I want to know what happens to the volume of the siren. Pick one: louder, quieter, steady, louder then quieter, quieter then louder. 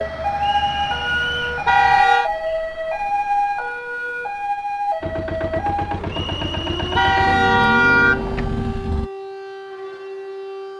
quieter.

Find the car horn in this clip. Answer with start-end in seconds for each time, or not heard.
1.6-2.3, 7.0-8.4.